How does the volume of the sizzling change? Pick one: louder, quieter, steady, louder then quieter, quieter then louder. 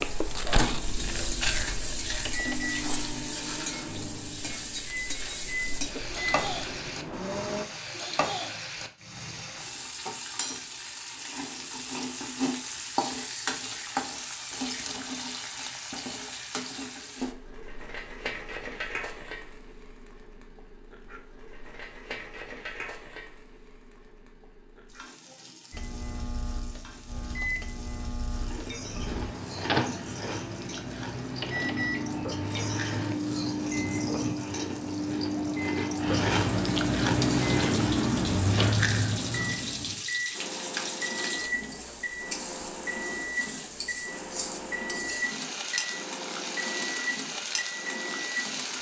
quieter then louder.